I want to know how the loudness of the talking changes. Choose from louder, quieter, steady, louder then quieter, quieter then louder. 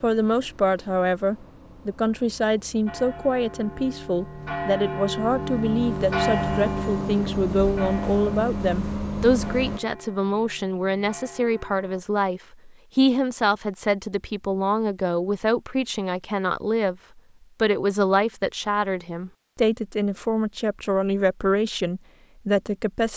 steady.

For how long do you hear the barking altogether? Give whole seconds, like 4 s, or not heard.
not heard.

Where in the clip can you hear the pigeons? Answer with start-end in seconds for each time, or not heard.
not heard.